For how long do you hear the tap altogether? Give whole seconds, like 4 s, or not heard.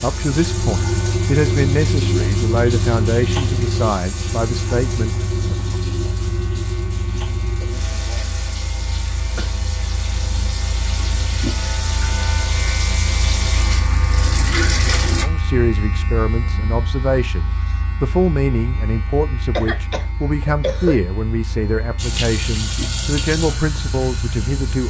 18 s.